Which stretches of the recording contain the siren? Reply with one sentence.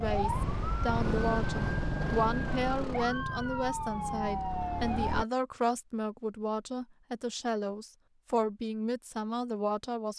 The siren can be heard from 0.0 to 5.2 s.